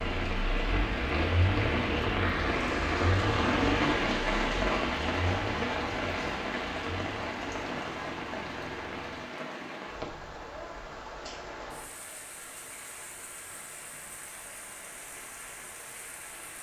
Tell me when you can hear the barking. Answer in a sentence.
You can't hear the barking here.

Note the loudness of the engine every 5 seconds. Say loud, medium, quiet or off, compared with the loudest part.
loud, medium, off, off.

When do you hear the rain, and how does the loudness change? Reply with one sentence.
The rain can be heard from 0.0 to 16.5 s, getting quieter.